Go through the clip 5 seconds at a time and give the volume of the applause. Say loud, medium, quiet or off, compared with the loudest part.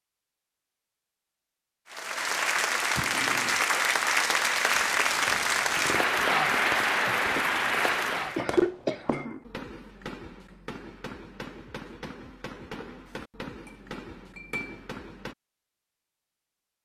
loud, loud, off, off.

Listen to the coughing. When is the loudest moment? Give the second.
9 s.